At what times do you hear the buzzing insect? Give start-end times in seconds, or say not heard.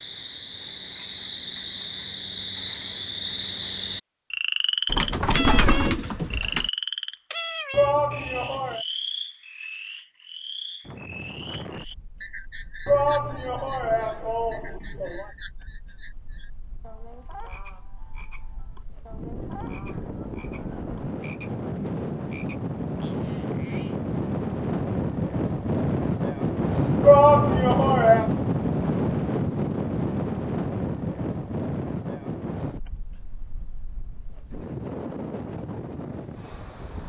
not heard.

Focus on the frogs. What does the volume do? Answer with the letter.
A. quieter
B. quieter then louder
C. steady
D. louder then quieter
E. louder
A.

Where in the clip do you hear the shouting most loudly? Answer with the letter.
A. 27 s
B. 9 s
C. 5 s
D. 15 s
A.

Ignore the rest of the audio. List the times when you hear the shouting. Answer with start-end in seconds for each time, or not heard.
7.7-8.8, 12.8-15.2, 27.0-28.3.